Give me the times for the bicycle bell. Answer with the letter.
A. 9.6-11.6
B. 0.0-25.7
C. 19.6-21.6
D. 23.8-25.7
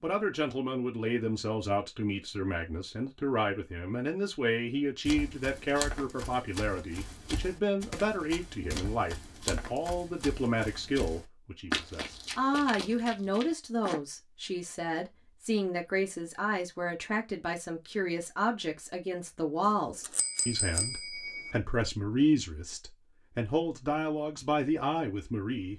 C.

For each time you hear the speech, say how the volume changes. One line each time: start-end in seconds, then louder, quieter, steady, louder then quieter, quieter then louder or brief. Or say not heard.
0.0-25.7 steady.